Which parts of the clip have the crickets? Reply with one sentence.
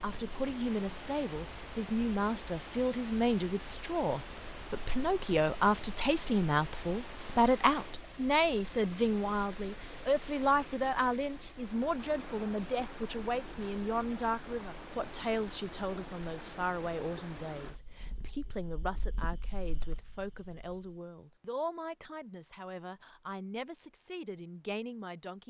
The crickets can be heard from 0.0 to 21.0 s.